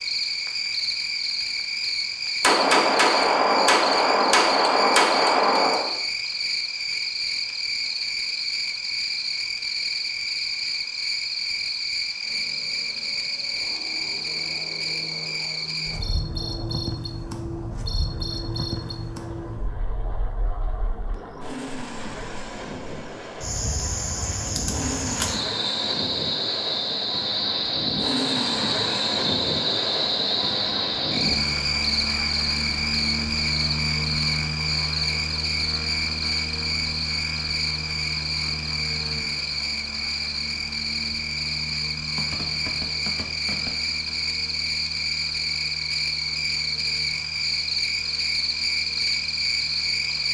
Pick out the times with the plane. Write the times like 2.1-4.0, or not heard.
12.2-50.2.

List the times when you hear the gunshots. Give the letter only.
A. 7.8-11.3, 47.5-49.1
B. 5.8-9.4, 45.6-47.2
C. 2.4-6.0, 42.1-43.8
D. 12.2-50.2
C.